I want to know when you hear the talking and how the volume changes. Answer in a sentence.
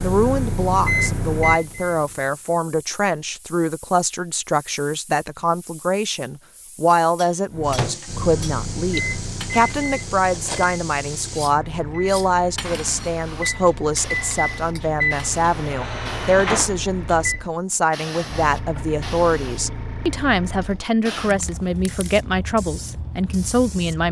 The talking can be heard from 0.0 to 24.0 s, at a steady volume.